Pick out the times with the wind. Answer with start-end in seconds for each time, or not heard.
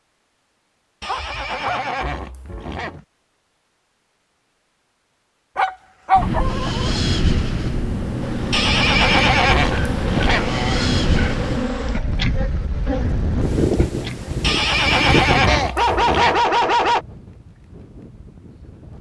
6.2-18.9.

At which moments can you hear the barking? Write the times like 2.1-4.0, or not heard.
1.1-1.9, 2.5-3.0, 5.5-6.9, 9.7-11.3, 15.4-17.1.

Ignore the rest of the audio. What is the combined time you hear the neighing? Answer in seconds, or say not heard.
6 s.